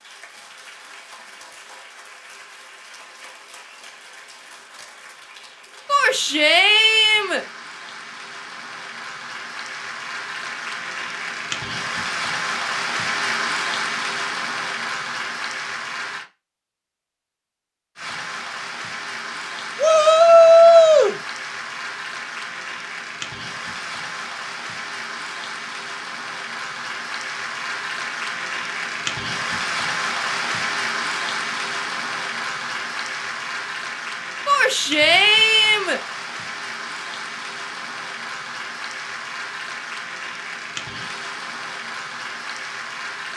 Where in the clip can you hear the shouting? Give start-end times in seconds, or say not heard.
5.8-7.4, 19.8-21.1, 34.5-36.0.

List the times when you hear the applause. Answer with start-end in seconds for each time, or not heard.
0.0-16.2, 17.9-43.3.